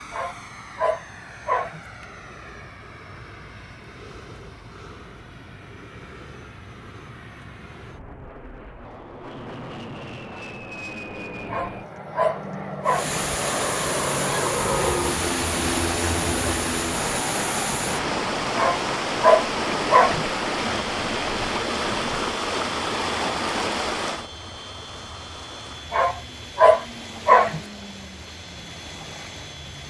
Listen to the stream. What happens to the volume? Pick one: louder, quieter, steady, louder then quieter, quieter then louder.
quieter.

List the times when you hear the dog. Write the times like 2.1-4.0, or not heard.
0.1-1.8, 11.4-13.2, 18.6-20.2, 25.9-27.6.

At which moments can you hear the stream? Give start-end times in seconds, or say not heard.
12.8-29.8.